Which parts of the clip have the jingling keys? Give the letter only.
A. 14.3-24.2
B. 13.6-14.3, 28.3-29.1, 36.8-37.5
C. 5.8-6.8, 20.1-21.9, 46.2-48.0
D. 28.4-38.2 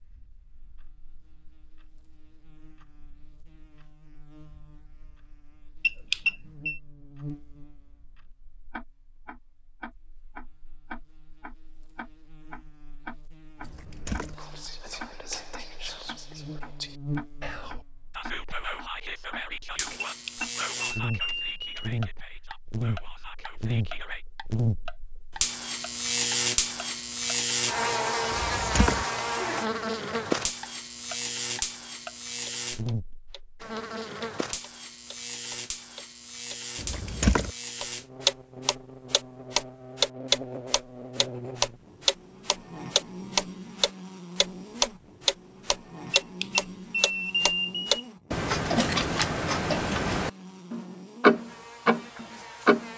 B.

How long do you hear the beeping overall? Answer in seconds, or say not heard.
5 s.